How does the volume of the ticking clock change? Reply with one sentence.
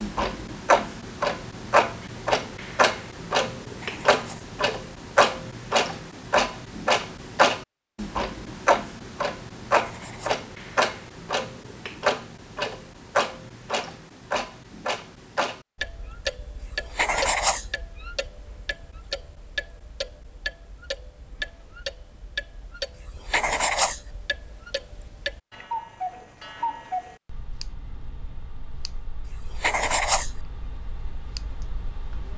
The loudness of the ticking clock goes down.